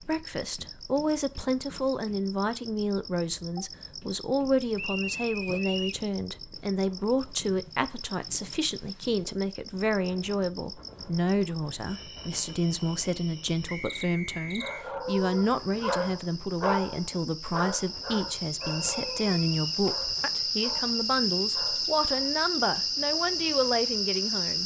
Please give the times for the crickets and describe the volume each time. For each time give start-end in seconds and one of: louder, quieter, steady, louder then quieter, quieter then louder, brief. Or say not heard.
0.0-24.6 louder.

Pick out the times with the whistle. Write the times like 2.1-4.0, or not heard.
4.8-6.0, 13.7-14.8, 18.6-19.8.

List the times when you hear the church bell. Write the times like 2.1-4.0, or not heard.
not heard.